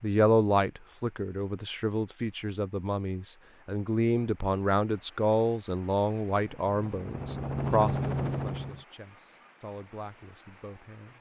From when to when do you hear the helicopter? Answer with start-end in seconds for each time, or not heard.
6.3-8.8.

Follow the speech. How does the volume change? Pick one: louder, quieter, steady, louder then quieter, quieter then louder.
quieter.